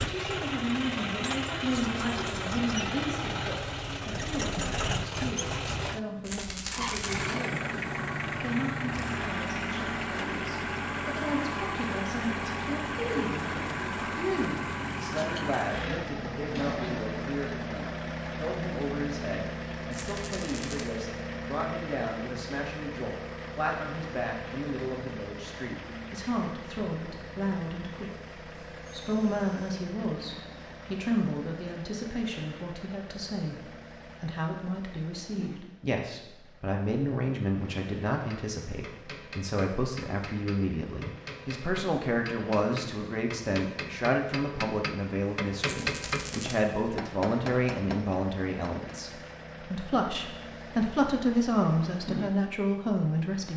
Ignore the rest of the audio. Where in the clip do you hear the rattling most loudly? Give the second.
7 s.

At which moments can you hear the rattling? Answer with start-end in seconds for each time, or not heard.
6.2-7.2, 19.9-20.9, 45.6-46.5.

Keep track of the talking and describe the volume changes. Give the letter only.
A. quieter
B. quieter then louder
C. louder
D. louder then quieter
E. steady
C.